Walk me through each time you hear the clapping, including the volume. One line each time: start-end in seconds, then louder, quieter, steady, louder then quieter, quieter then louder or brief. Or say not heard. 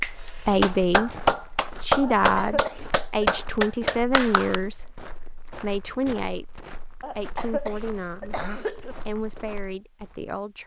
0.0-4.6 steady.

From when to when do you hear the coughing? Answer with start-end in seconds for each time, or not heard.
2.0-3.4, 7.0-8.9.